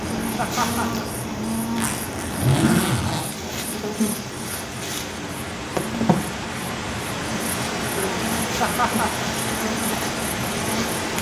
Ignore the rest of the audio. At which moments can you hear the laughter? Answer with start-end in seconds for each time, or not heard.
0.3-1.1, 8.6-9.2.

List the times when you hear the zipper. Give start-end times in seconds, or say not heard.
1.7-3.3.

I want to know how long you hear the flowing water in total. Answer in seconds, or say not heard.
11 s.